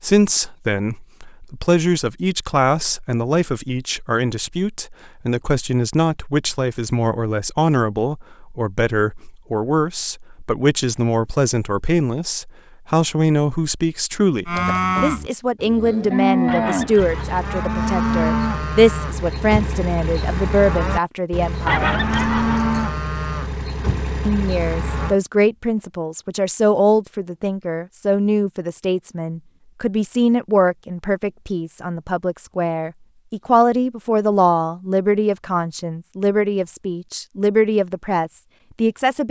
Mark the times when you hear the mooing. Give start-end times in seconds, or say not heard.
14.4-25.1.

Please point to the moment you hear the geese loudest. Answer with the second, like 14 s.
22 s.